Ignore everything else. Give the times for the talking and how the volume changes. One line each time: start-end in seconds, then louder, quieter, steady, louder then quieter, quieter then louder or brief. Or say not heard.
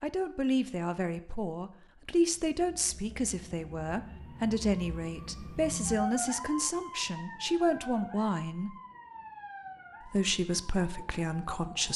0.0-8.8 steady
10.1-11.9 brief.